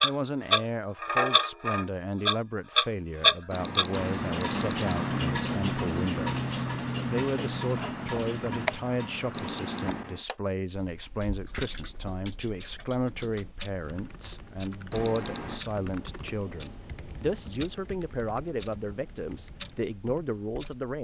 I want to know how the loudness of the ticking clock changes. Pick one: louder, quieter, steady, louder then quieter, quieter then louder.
quieter.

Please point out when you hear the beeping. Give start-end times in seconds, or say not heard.
3.5-5.2, 9.3-10.2, 14.9-15.6.